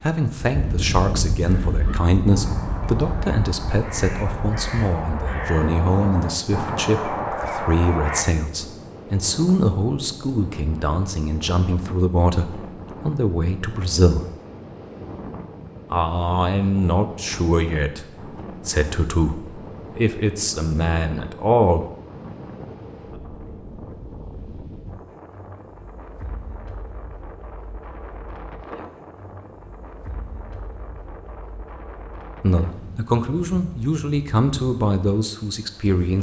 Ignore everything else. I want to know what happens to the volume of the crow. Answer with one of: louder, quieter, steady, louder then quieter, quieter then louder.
louder.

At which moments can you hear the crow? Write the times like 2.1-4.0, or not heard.
1.4-8.2.